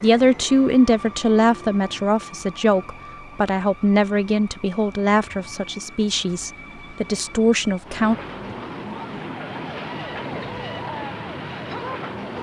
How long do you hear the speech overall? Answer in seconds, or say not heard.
8 s.